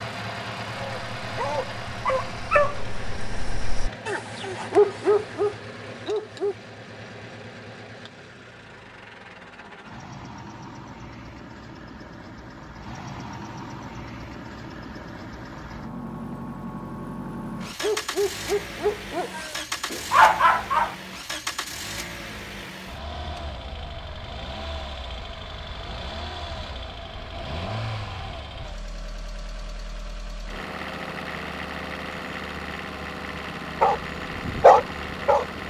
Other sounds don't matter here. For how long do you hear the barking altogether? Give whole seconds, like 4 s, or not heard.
11 s.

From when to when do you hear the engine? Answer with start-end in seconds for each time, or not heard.
0.0-35.6.